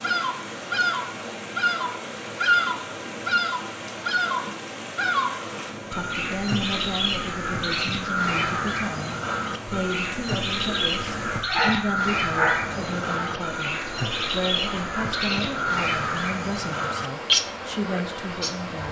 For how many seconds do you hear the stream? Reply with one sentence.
The stream can be heard for 19 seconds in total.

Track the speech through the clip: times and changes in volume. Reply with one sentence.
The speech can be heard from 5.9 to 18.8 s, at a steady volume.